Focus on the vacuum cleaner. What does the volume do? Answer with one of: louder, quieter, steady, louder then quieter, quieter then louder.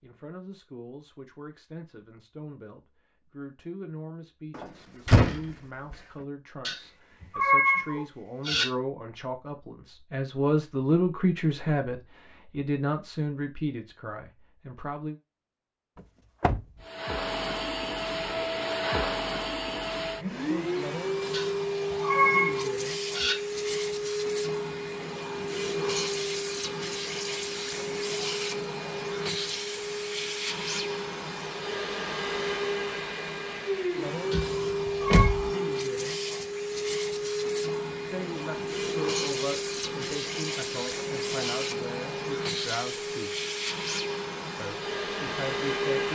steady.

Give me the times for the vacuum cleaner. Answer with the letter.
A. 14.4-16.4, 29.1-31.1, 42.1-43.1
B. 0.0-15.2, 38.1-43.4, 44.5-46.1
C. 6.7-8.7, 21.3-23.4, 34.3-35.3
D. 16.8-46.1
D.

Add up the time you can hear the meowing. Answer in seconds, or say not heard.
5 s.